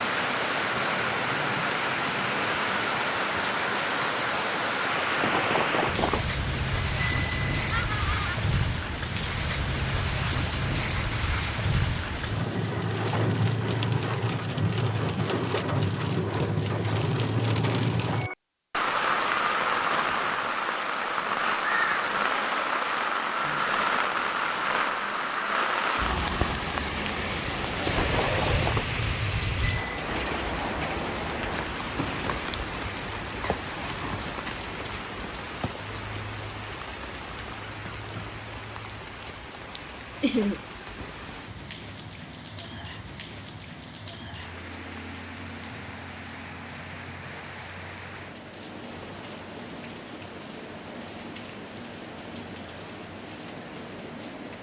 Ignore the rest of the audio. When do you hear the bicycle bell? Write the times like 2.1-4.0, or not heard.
5.2-7.7, 27.8-30.1.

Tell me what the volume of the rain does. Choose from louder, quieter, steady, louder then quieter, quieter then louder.
quieter.